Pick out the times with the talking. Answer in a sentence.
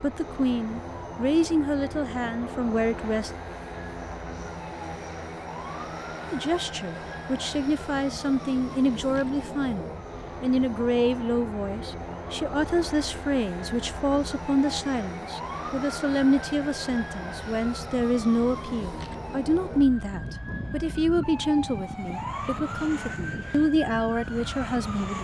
You can hear the talking from 0.0 to 3.3 s and from 6.3 to 25.1 s.